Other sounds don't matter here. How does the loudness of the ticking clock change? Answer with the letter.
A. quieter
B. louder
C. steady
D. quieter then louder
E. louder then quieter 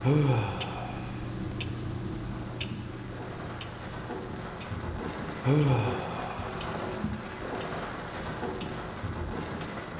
A.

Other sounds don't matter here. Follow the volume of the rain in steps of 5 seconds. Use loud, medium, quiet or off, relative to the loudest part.
medium, loud.